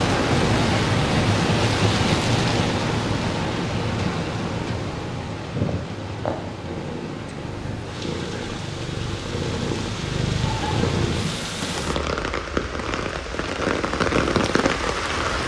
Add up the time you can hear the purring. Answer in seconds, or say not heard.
12 s.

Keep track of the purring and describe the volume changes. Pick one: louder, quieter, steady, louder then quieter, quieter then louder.
quieter then louder.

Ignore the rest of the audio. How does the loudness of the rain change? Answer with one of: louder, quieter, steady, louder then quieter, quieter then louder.
quieter then louder.